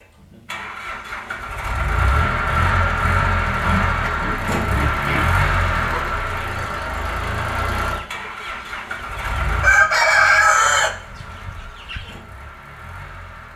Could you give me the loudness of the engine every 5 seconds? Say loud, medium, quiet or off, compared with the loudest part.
loud, loud, quiet.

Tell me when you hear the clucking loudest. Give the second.
10 s.